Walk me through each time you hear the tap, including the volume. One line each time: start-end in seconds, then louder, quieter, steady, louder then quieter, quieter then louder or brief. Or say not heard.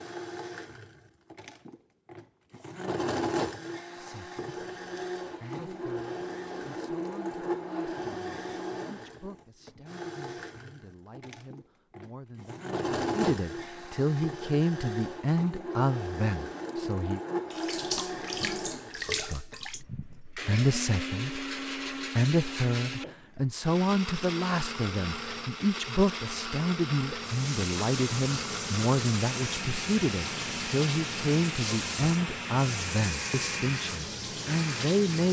17.5-19.9 brief
27.2-35.2 steady.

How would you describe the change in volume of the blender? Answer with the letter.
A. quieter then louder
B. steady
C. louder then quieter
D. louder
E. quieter
B.